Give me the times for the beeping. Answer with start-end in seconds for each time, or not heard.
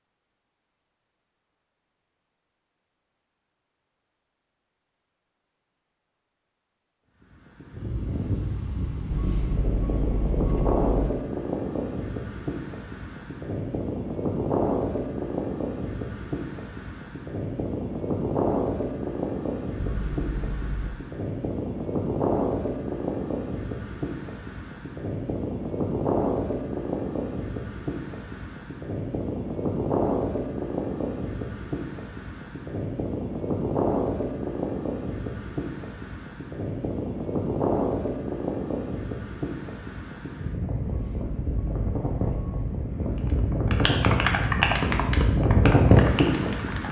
9.1-11.1, 19.8-20.9, 40.9-42.8.